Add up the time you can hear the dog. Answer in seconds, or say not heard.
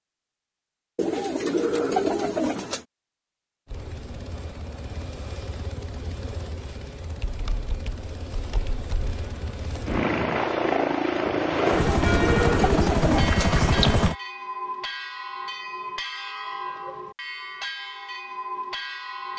not heard.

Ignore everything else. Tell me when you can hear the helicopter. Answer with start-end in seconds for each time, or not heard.
3.6-14.2.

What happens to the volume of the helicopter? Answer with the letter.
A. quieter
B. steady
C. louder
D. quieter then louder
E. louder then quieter
C.